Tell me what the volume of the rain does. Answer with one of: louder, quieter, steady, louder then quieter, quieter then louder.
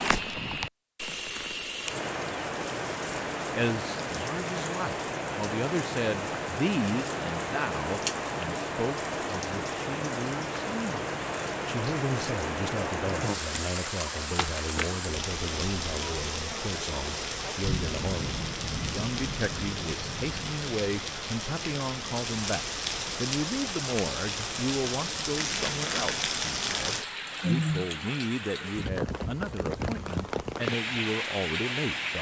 steady.